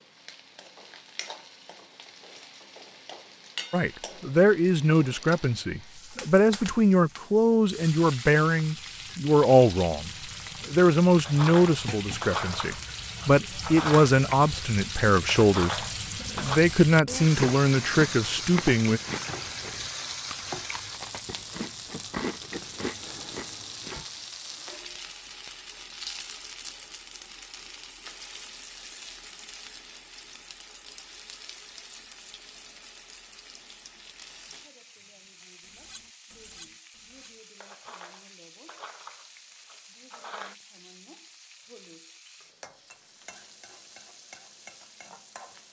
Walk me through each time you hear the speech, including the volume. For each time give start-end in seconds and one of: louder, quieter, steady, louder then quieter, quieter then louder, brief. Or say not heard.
3.7-19.0 steady.